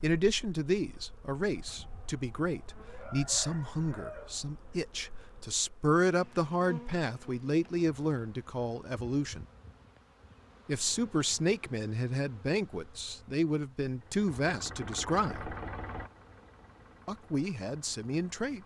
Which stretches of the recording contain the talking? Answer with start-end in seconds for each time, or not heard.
0.0-9.4, 10.7-15.6, 17.1-18.6.